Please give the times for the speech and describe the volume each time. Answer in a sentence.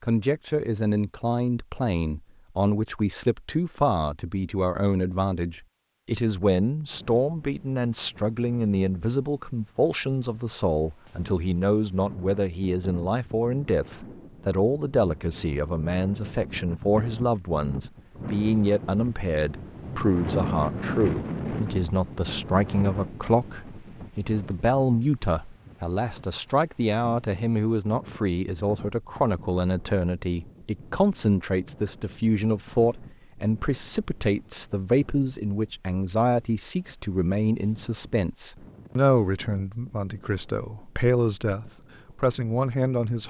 The speech can be heard from 0.0 to 43.2 s, at a steady volume.